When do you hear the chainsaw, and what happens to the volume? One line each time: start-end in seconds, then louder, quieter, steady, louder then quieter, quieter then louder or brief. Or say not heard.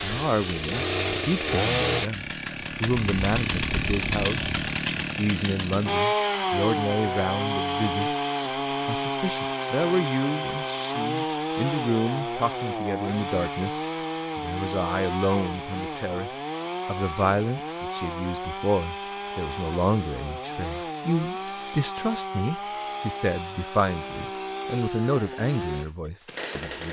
0.0-26.8 quieter.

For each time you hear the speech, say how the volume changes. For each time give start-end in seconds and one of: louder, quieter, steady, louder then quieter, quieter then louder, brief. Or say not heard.
0.0-26.8 steady.